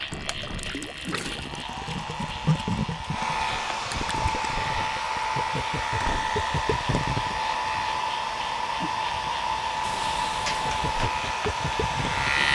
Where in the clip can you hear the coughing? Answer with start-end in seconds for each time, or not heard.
not heard.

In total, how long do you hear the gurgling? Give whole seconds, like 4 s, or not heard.
9 s.